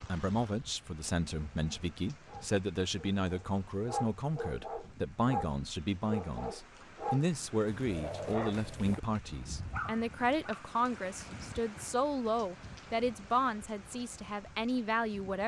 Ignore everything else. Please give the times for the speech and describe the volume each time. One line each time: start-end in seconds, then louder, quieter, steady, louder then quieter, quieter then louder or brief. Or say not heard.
0.1-15.4 steady.